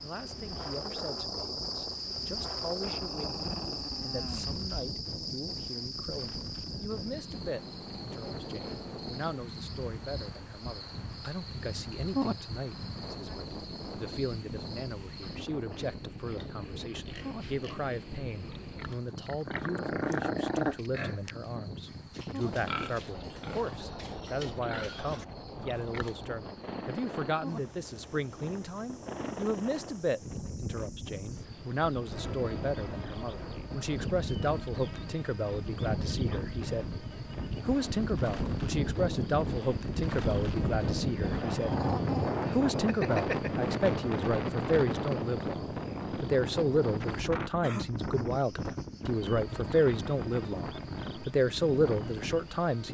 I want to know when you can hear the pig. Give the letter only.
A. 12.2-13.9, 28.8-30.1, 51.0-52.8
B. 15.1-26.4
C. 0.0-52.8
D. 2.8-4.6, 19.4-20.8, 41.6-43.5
B.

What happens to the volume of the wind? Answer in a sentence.
The loudness of the wind goes up.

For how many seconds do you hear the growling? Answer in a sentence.
The growling can be heard for 5 seconds in total.